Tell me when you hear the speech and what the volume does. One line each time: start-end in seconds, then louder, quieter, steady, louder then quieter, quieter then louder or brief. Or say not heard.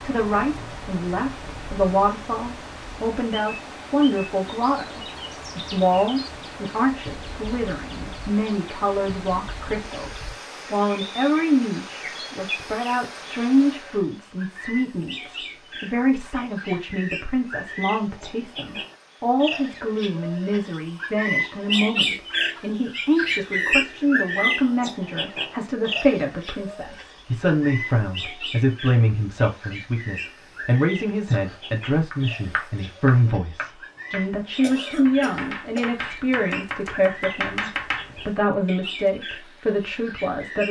0.0-40.6 steady.